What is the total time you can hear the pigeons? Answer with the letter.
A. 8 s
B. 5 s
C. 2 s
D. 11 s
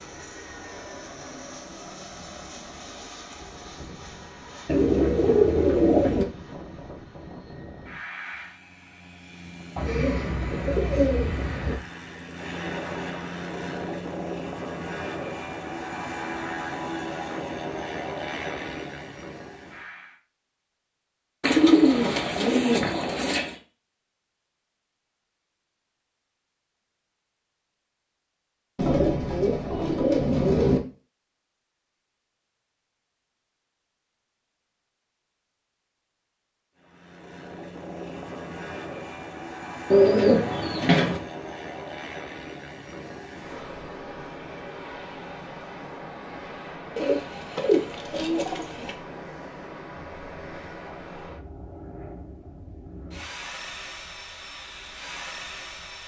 D.